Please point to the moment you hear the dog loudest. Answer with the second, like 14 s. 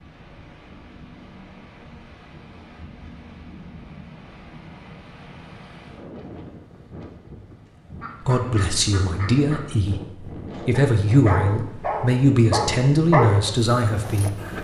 13 s.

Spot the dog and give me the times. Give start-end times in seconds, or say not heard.
10.6-14.5.